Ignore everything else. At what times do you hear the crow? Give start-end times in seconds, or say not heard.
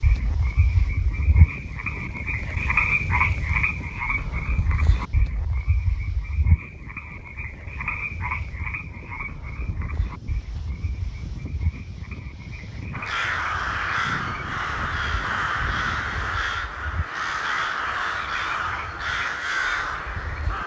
12.9-20.6.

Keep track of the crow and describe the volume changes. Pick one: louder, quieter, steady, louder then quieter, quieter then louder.
steady.